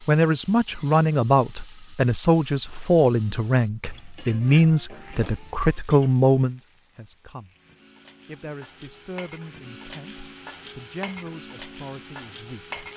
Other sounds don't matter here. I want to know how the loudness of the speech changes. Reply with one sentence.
The volume of the speech goes down.